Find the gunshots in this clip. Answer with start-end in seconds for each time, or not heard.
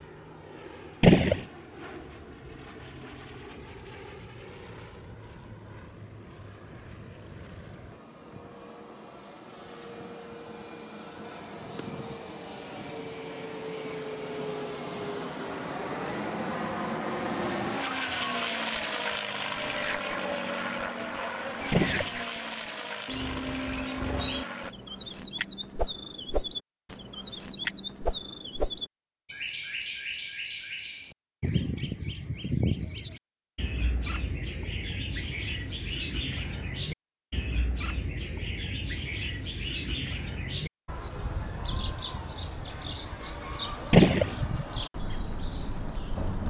1.0-1.4, 21.7-22.1, 43.9-44.4.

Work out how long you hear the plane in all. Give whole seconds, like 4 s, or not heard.
25 s.